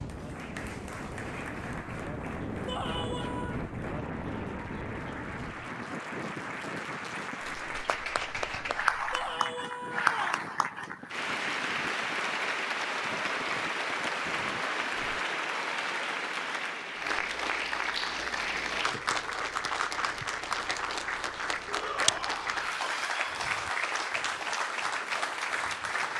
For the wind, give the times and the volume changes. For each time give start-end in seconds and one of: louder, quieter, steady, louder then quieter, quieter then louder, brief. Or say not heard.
0.0-15.2 quieter.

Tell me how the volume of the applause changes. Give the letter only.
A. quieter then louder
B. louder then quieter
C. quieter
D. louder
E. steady
D.